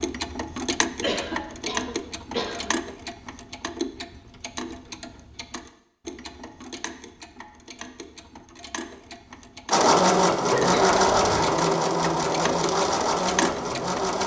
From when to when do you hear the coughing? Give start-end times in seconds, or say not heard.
1.0-2.7, 10.4-11.2.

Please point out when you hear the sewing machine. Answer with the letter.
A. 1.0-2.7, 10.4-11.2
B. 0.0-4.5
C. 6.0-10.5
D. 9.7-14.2
D.